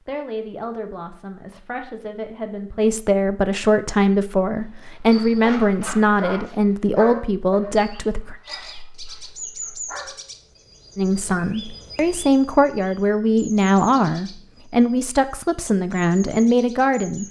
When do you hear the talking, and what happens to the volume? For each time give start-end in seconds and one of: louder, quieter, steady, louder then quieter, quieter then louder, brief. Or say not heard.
0.1-8.3 louder
10.9-17.2 steady.